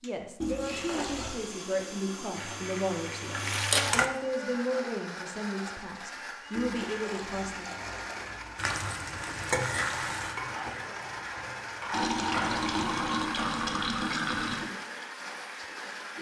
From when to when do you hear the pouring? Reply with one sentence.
You can hear the pouring from 0.4 to 1.4 s, from 6.5 to 8.6 s and from 11.9 to 14.7 s.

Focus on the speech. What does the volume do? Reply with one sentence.
The volume of the speech stays about the same.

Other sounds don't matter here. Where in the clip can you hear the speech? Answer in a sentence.
The speech can be heard from 0.0 to 7.7 s.